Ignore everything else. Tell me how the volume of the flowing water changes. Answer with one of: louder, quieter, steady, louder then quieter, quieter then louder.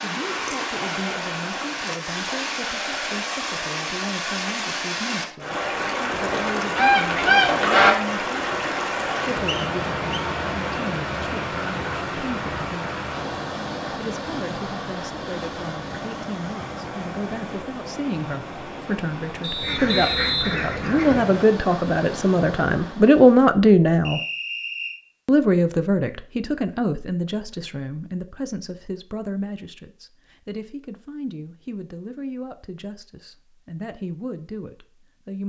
quieter.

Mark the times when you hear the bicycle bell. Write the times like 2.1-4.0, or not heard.
not heard.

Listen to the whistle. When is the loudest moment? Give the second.
20 s.